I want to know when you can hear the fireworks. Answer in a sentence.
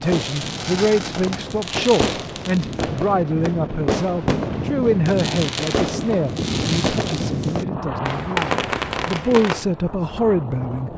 The fireworks can be heard from 0.0 to 9.7 s.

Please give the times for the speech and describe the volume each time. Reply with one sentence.
The speech can be heard from 0.0 to 10.9 s, getting quieter then louder.